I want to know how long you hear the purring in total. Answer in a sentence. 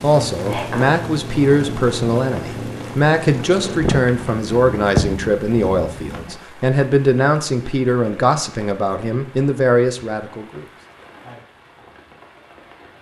The purring can be heard for 6 seconds in total.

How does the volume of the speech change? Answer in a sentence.
The loudness of the speech stays about the same.